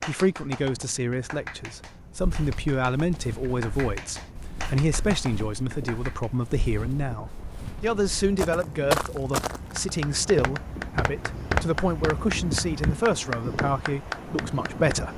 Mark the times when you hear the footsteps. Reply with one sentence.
You can hear the footsteps from 2.1 to 12.2 s.